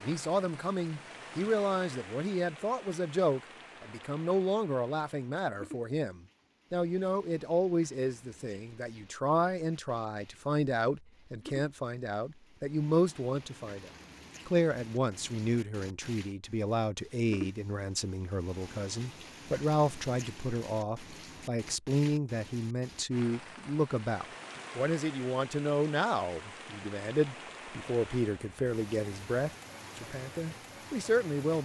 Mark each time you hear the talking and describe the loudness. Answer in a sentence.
The talking can be heard from 0.0 to 31.5 s, at a steady volume.